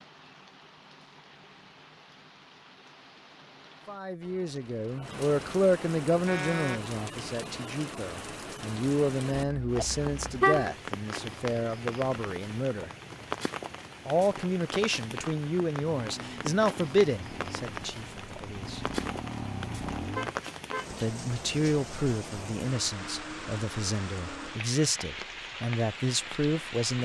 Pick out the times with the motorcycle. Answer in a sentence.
The motorcycle can be heard from 15.8 to 20.4 s.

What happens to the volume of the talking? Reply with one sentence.
The volume of the talking stays about the same.